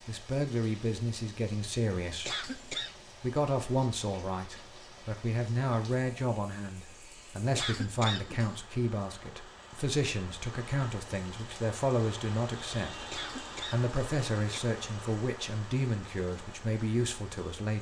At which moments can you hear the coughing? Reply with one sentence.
You can hear the coughing from 2.2 to 3.0 s, from 7.5 to 8.6 s and from 13.1 to 14.6 s.